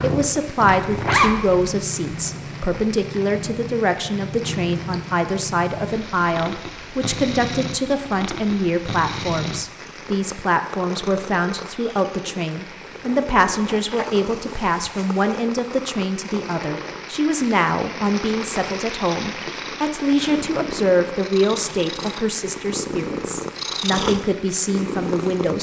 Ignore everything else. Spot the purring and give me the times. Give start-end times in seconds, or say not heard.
0.0-25.5.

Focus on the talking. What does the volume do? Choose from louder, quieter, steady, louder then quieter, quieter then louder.
steady.